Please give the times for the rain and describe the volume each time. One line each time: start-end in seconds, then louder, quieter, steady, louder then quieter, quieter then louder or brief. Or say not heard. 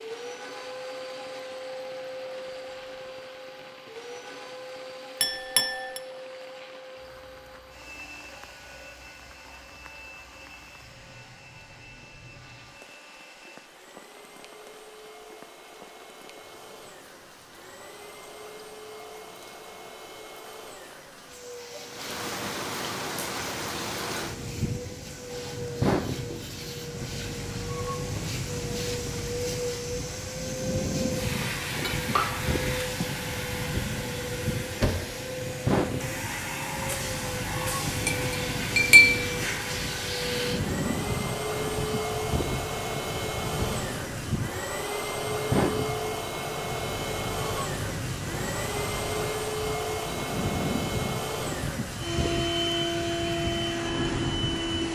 0.0-54.9 louder.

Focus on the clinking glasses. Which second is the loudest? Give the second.
39 s.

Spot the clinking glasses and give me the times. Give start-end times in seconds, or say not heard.
5.2-6.0, 31.8-33.2, 37.9-39.2.